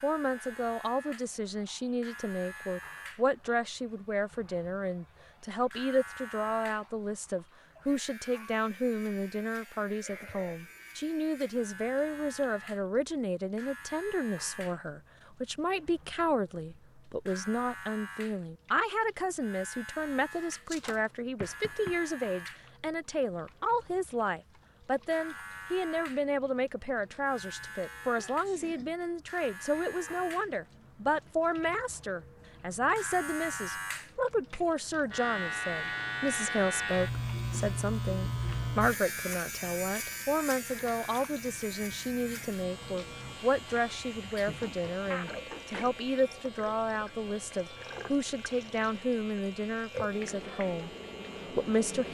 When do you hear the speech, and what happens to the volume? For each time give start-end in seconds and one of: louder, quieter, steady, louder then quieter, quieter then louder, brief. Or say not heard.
0.0-50.9 steady
51.5-52.0 brief.